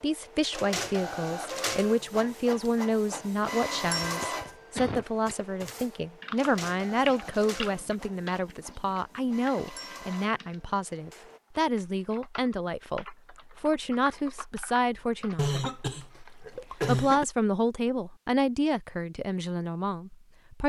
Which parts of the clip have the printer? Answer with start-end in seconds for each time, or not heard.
0.0-11.4.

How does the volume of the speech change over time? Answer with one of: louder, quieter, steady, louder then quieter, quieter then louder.
steady.